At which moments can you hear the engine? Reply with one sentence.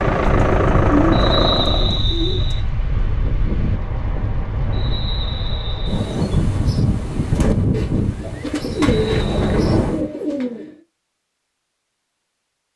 You can hear the engine from 0.0 to 2.0 s.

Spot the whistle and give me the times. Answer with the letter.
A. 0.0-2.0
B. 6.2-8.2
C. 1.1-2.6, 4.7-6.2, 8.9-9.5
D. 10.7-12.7
C.